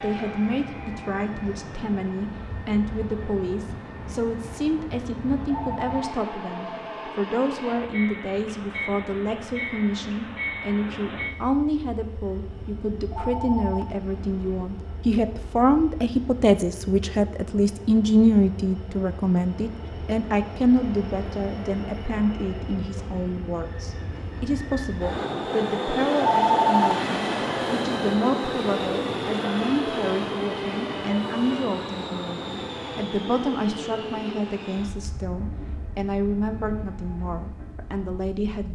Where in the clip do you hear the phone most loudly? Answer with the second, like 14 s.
27 s.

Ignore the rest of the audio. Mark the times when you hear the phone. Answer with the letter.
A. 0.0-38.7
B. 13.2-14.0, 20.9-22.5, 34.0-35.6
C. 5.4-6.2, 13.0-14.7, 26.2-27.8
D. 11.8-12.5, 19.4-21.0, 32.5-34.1
C.